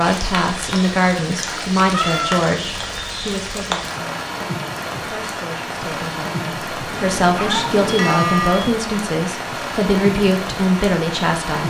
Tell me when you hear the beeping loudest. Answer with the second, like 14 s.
8 s.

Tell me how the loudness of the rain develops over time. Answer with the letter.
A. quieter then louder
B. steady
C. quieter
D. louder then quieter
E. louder
B.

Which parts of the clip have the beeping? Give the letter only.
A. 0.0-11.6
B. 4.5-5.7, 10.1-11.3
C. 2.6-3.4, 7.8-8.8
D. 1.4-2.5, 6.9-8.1
C.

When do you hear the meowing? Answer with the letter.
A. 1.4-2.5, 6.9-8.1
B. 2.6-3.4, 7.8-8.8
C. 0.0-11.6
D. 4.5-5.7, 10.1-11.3
A.